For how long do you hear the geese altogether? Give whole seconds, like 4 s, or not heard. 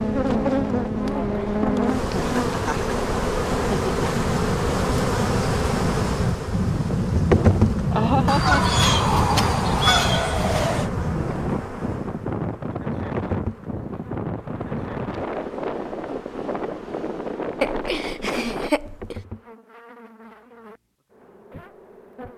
3 s.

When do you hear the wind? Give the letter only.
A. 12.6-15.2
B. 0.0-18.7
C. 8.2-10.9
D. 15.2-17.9
B.